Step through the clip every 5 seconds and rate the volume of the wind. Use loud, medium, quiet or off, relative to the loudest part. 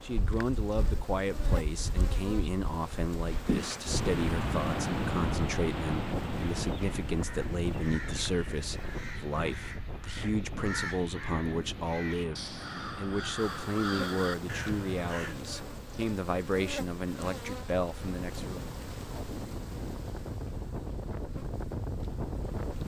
loud, loud, medium, medium, loud.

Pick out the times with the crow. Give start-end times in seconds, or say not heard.
6.5-15.3.